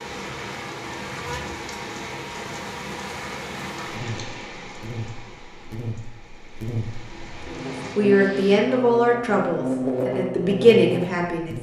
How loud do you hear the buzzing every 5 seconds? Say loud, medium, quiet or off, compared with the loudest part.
medium, loud, loud.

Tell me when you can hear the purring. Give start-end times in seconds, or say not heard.
not heard.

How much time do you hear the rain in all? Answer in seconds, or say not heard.
9 s.